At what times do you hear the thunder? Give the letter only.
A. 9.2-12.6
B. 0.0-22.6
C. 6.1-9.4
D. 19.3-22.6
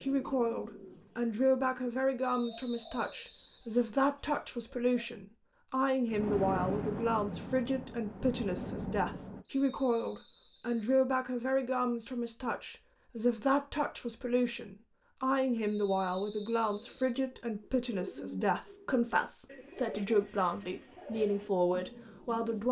C.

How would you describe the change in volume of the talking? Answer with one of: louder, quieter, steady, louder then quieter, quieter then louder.
steady.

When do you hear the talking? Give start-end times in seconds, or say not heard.
0.0-22.6.